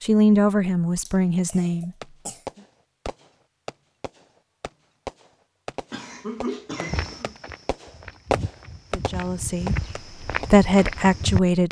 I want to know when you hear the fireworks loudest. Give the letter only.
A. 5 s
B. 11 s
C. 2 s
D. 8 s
D.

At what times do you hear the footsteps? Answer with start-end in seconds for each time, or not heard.
6.9-11.4.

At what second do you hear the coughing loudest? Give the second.
6 s.